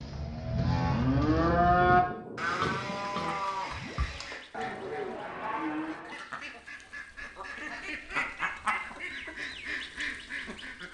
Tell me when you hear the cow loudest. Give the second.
2 s.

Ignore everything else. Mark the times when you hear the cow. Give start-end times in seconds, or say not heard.
0.0-6.2.